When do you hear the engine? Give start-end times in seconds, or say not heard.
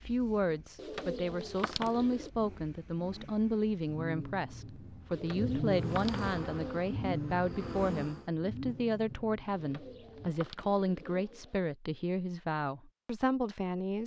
0.0-10.3.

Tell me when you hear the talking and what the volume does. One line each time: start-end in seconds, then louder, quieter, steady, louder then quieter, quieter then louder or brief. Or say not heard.
0.1-14.0 steady.